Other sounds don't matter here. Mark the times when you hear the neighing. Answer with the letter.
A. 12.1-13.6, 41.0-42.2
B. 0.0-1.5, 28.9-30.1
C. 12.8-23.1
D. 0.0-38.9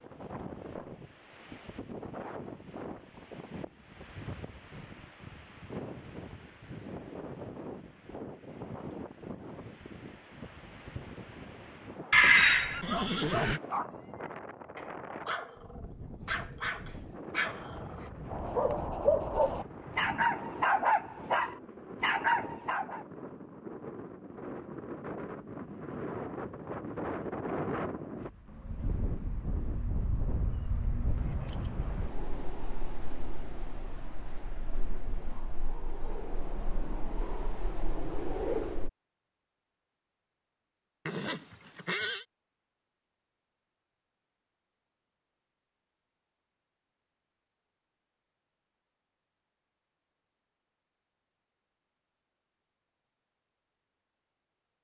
A.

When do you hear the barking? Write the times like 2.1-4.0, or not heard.
12.8-23.1.